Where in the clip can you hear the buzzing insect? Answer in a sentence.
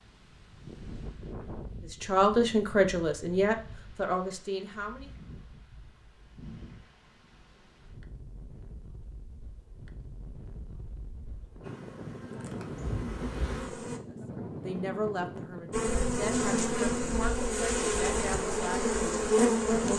The buzzing insect can be heard from 11.6 to 14.0 s and from 15.7 to 19.9 s.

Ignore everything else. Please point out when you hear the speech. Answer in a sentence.
The speech can be heard from 2.0 to 5.1 s and from 14.1 to 19.9 s.